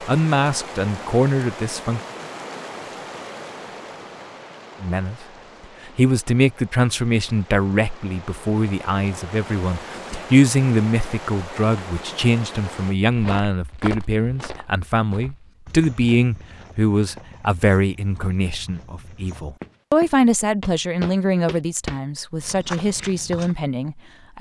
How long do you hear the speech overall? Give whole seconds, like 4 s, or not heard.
21 s.